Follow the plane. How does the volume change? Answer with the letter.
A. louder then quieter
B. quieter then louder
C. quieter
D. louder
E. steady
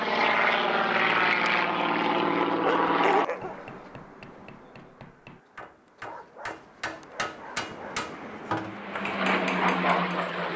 B.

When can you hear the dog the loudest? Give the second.
3 s.